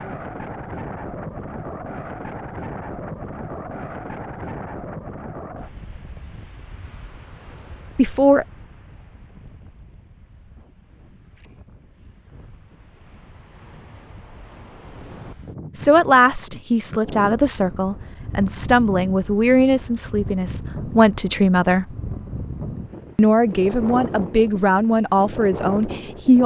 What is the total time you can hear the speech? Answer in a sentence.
The speech can be heard for 10 seconds in total.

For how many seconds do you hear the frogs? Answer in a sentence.
You can't hear the frogs here.